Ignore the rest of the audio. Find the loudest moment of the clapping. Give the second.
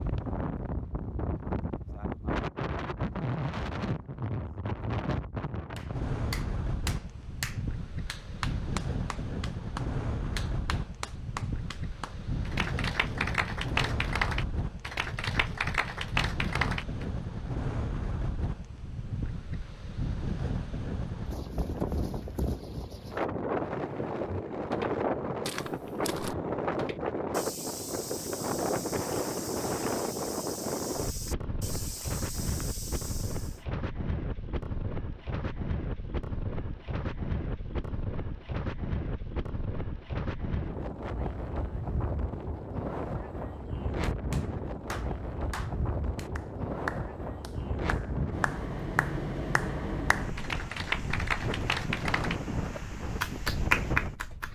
54 s.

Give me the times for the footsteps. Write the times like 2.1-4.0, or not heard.
24.2-33.6.